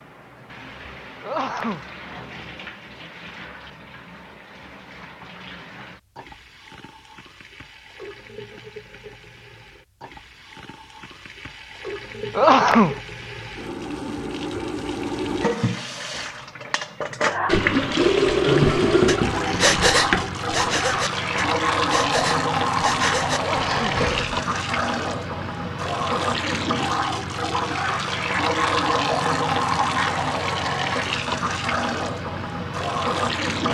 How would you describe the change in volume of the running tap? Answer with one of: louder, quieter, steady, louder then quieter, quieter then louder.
louder.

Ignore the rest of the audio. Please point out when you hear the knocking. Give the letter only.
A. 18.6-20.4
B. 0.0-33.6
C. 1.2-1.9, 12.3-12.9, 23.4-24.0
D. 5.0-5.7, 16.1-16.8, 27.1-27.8
A.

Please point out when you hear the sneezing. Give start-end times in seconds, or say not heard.
1.2-1.9, 12.3-12.9, 23.4-24.0.